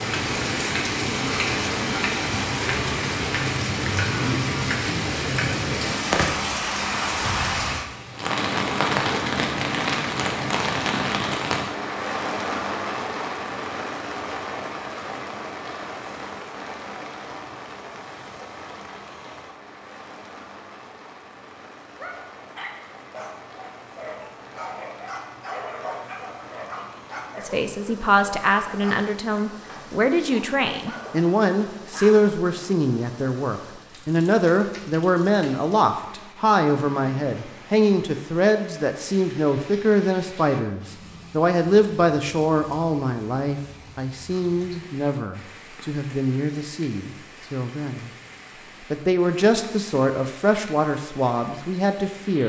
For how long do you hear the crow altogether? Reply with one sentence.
The crow can't be heard in this clip.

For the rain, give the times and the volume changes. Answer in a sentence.
The rain can be heard from 0.0 to 52.4 s, getting quieter.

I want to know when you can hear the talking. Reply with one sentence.
You can hear the talking from 27.4 to 48.1 s and from 48.9 to 52.4 s.